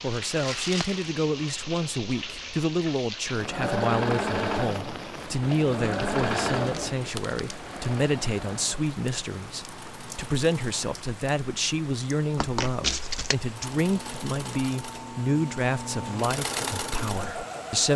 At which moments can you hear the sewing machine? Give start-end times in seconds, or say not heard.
3.4-10.8, 13.4-17.9.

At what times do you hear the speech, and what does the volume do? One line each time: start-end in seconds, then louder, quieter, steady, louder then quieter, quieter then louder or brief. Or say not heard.
0.0-17.9 steady.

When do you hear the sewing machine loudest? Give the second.
4 s.